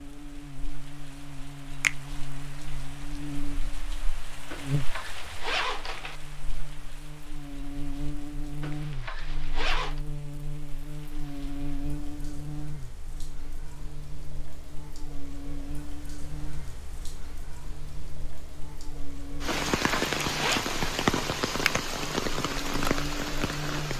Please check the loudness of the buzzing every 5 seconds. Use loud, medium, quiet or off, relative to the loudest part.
loud, loud, loud, medium, loud.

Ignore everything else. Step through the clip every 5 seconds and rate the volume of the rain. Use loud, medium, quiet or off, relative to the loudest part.
quiet, quiet, quiet, medium, loud.